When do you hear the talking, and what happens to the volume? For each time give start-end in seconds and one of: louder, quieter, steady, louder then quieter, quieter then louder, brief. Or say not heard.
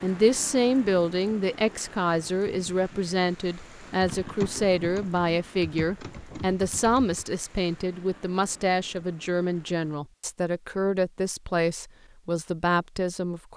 0.0-13.5 steady.